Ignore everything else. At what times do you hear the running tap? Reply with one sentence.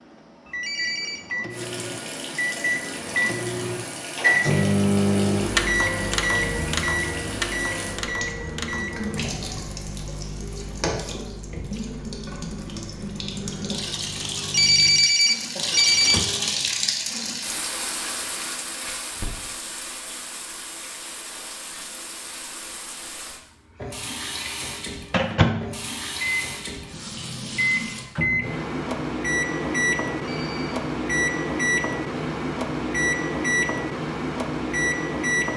The running tap can be heard from 1.5 to 28.1 s.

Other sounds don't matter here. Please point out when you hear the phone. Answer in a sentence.
The phone can be heard from 0.5 to 1.3 s, from 14.3 to 16.2 s and from 30.1 to 30.9 s.